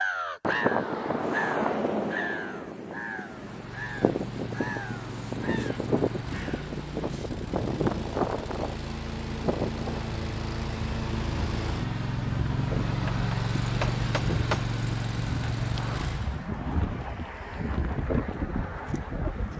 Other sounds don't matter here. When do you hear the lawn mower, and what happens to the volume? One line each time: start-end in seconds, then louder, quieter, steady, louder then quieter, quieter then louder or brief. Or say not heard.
3.3-16.5 louder.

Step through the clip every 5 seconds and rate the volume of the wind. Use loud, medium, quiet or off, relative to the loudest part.
loud, loud, medium, loud.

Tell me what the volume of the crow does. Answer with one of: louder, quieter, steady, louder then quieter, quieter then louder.
quieter.